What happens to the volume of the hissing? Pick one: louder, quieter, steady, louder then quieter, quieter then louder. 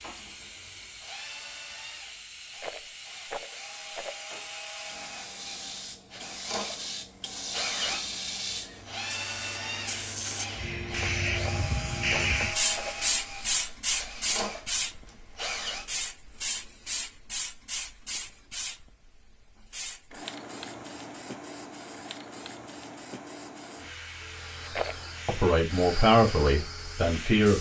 louder then quieter.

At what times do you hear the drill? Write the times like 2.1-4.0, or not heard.
0.0-15.8, 24.2-27.5.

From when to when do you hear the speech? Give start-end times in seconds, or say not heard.
25.2-27.5.